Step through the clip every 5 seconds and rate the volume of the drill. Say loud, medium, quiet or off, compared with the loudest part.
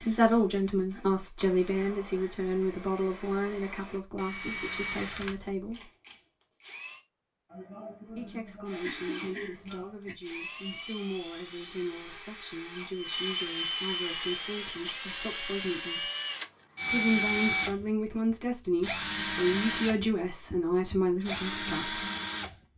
quiet, quiet, medium, loud, loud.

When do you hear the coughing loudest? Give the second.
9 s.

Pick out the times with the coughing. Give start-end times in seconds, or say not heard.
7.5-10.2.